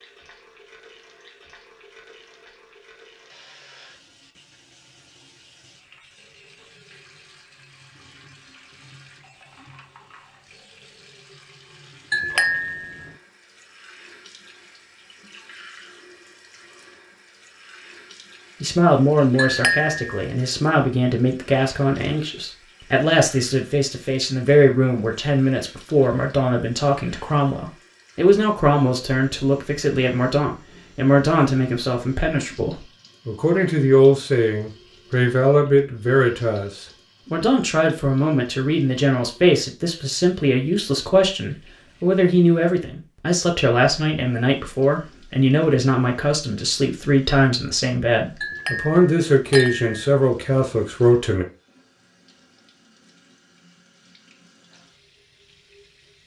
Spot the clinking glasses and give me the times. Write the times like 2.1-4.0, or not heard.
12.1-13.1, 19.4-20.2, 48.4-50.0.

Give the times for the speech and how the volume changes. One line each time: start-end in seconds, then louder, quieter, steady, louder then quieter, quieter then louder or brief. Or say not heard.
18.6-51.5 steady.